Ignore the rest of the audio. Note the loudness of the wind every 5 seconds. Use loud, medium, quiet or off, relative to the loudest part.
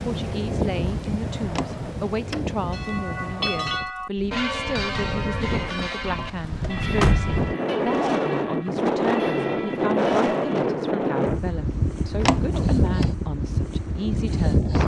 medium, loud, loud.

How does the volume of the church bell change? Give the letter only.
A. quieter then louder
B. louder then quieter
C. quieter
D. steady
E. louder
C.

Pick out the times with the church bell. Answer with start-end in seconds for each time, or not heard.
2.6-10.6.